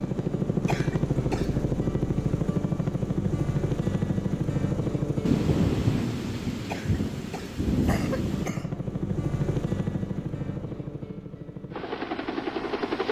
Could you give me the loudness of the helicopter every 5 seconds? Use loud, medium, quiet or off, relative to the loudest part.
loud, loud, medium.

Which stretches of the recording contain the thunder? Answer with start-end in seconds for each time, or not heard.
5.2-8.6.